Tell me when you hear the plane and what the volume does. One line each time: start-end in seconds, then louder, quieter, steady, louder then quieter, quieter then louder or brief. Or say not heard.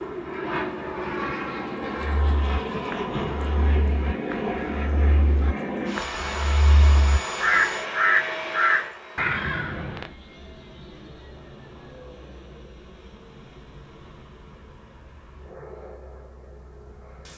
0.0-17.3 quieter.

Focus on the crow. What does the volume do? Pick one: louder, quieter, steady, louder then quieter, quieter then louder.
louder.